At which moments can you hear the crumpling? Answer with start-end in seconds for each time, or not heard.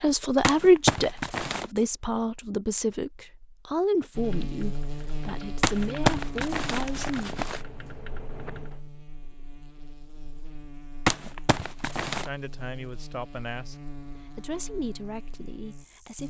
0.4-1.6, 5.6-7.6, 11.1-12.3.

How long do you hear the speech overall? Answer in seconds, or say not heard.
11 s.